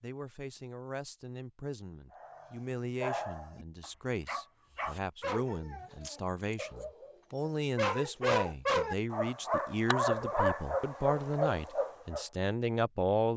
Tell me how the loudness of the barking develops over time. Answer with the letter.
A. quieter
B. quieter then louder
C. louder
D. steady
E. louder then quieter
C.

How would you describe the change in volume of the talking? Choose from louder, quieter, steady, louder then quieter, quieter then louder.
louder.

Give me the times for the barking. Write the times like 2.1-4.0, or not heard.
2.1-12.2.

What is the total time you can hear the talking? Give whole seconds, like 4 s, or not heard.
13 s.